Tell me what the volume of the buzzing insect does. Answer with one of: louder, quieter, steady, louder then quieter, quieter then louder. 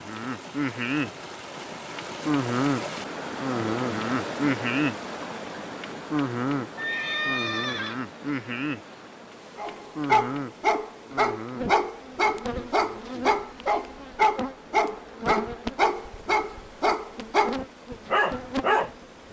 quieter.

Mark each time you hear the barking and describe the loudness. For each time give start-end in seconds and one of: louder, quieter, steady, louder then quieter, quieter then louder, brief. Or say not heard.
9.6-18.9 steady.